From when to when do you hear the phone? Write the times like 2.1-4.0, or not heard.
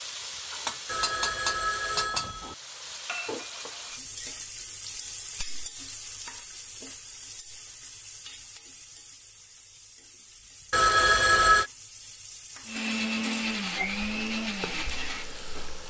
0.8-2.5, 10.7-11.7.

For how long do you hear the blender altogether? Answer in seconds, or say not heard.
3 s.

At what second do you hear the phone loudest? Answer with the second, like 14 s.
11 s.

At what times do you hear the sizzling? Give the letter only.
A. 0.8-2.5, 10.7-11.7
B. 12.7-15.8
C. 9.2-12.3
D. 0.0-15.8
D.